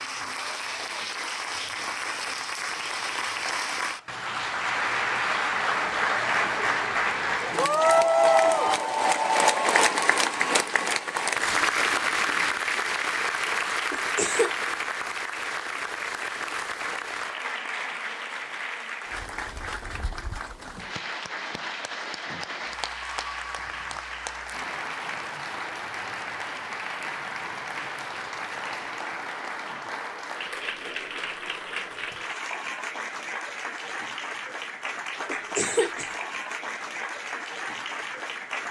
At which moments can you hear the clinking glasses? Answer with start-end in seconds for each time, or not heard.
not heard.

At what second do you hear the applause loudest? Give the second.
8 s.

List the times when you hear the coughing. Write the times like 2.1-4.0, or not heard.
13.9-14.5, 35.2-36.1.